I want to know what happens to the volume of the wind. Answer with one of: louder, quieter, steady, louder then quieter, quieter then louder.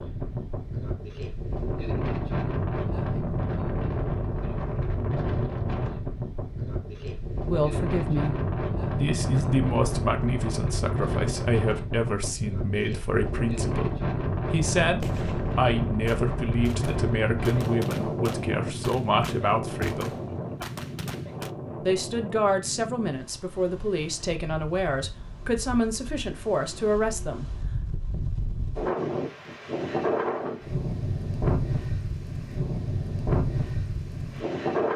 quieter then louder.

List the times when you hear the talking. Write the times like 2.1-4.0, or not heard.
7.5-8.3, 8.9-20.1, 21.8-27.6.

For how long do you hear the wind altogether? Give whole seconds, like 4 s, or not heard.
35 s.